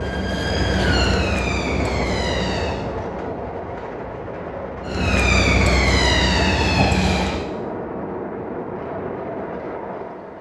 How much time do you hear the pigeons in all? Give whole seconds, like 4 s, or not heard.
not heard.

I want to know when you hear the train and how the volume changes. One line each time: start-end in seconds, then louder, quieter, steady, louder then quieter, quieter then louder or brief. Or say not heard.
0.0-10.3 steady.